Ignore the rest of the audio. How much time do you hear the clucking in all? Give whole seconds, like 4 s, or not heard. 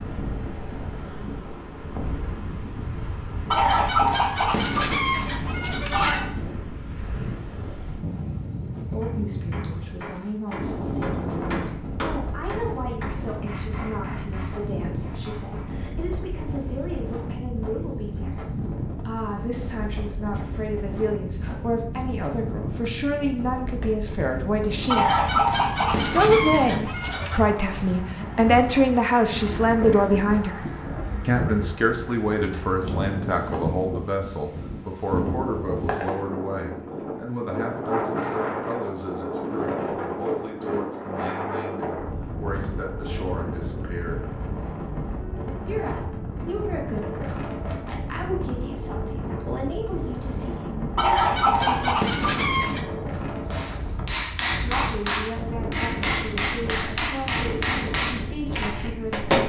7 s.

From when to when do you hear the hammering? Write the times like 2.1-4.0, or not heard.
9.0-15.8, 53.5-59.4.